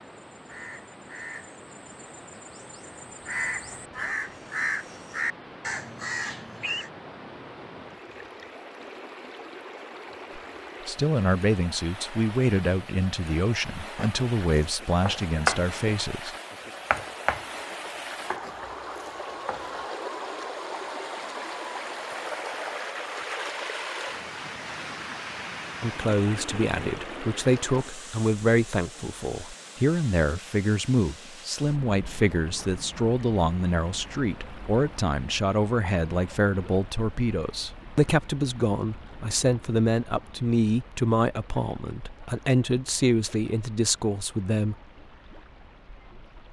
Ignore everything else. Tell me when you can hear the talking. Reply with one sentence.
The talking can be heard from 10.3 to 16.4 s and from 25.8 to 44.8 s.